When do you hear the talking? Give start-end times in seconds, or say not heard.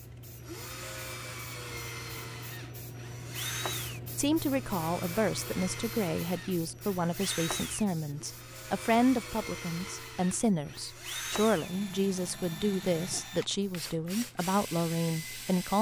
4.2-15.7.